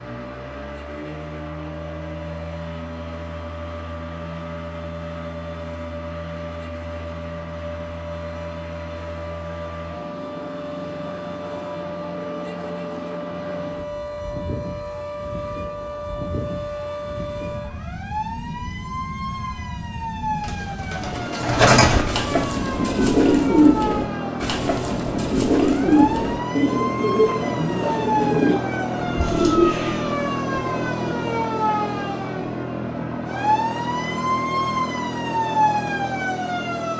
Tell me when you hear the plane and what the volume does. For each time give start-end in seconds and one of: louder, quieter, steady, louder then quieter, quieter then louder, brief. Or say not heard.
0.0-36.9 louder.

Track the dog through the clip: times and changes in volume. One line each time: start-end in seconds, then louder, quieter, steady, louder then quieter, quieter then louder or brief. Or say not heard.
not heard.